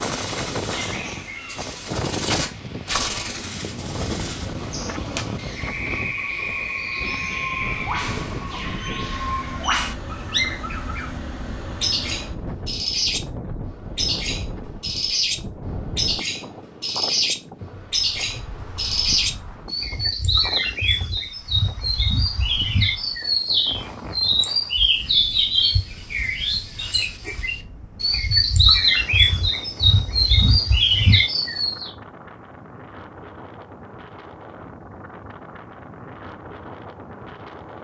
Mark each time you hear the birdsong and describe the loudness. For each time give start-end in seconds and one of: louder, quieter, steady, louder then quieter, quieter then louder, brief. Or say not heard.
0.0-31.9 louder.